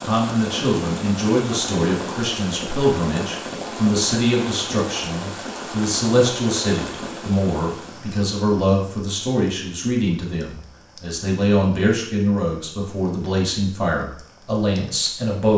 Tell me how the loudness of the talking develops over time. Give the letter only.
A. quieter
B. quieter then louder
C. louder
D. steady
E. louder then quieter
D.